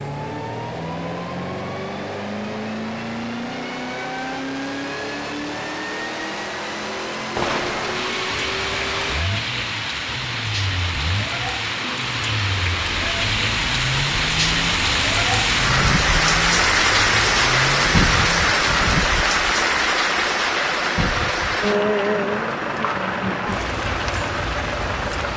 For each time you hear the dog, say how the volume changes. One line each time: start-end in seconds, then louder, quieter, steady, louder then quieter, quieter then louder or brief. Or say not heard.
not heard.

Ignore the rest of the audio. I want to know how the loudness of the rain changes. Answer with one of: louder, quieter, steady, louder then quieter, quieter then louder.
louder then quieter.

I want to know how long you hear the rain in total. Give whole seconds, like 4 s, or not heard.
18 s.